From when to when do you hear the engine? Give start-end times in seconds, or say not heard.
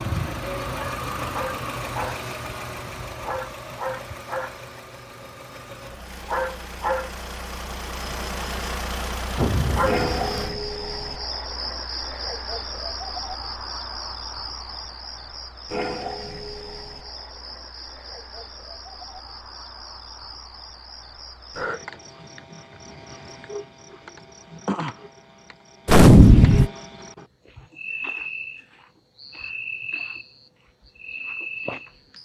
0.0-10.6.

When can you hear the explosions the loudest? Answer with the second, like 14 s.
26 s.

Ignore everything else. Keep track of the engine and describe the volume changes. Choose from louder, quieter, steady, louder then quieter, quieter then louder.
quieter then louder.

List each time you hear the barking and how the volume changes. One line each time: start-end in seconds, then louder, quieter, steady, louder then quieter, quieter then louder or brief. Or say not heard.
not heard.